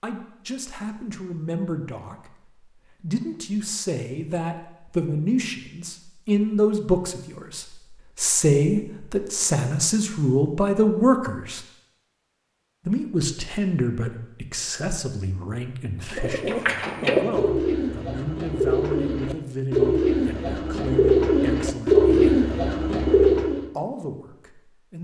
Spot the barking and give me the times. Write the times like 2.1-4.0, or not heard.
not heard.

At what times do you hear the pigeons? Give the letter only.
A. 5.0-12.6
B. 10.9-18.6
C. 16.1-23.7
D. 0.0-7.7
C.